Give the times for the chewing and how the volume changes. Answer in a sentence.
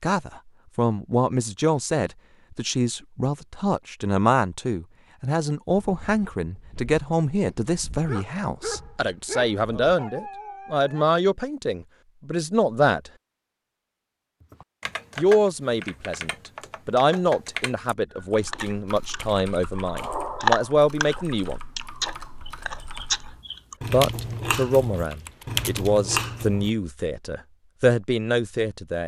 You can hear the chewing from 18.1 to 26.7 s, getting louder then quieter.